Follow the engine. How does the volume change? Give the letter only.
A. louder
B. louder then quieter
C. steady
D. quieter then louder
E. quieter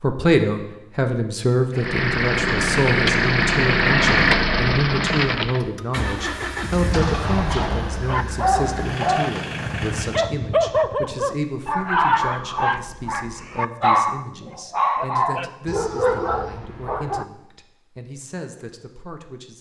E.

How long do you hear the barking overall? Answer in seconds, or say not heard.
9 s.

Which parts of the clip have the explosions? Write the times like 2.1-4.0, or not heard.
6.8-8.2.